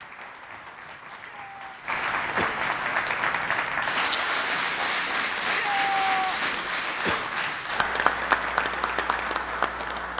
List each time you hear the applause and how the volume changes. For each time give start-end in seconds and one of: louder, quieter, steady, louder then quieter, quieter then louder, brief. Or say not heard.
0.0-10.1 louder.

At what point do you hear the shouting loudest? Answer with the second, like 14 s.
6 s.